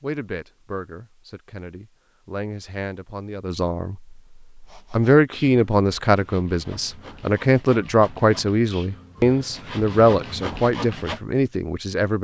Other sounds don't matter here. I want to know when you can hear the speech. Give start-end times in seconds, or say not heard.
0.0-4.0, 4.9-12.2.